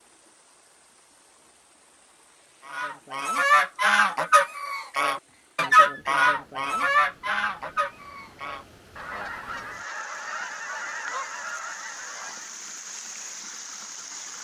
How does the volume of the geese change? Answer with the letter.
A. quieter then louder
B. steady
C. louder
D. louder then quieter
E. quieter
E.